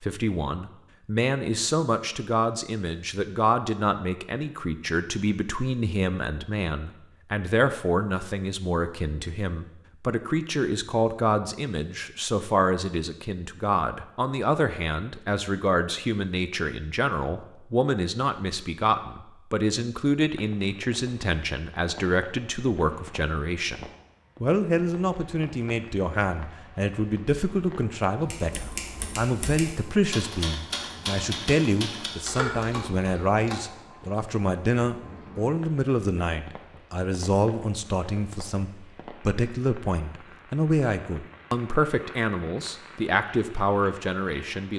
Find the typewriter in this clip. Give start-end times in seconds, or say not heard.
28.2-33.5.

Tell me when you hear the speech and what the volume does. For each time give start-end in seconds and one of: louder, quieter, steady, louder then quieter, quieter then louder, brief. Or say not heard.
0.0-44.7 steady.